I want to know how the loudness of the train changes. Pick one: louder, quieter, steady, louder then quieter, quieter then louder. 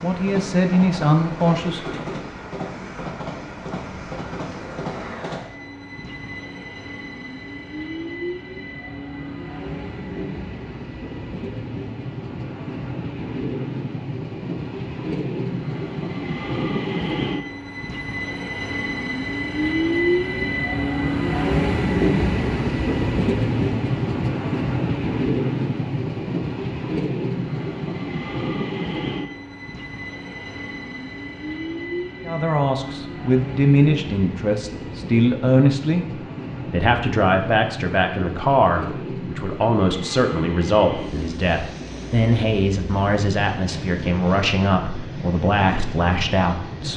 louder then quieter.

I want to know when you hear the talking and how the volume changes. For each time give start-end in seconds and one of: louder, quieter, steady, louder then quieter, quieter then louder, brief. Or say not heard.
0.0-2.0 brief
32.2-46.9 steady.